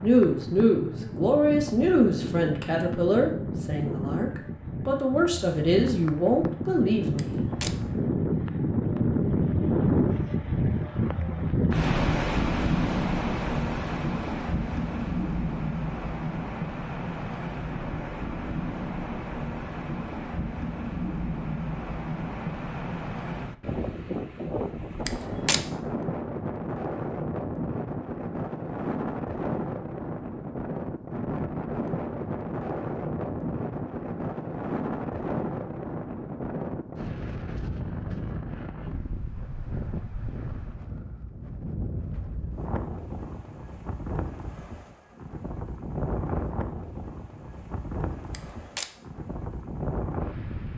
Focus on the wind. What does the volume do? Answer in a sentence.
The volume of the wind goes down.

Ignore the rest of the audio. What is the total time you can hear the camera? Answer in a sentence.
The camera can be heard for 2 seconds in total.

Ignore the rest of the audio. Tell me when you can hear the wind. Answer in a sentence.
You can hear the wind from 0.0 to 50.7 s.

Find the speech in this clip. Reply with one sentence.
You can hear the speech from 0.0 to 7.4 s.